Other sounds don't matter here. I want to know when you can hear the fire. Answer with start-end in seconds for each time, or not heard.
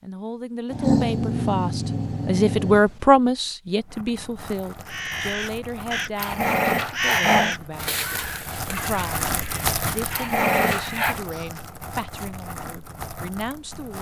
3.8-13.9.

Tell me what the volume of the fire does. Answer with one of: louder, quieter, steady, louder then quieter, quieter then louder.
louder then quieter.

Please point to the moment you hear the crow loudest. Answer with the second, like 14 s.
7 s.